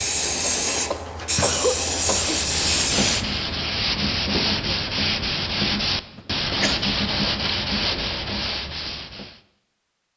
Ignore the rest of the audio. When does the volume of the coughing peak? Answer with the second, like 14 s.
2 s.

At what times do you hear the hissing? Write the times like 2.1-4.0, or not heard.
0.0-3.2.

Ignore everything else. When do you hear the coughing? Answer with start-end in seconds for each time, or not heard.
0.9-2.4, 6.0-6.8.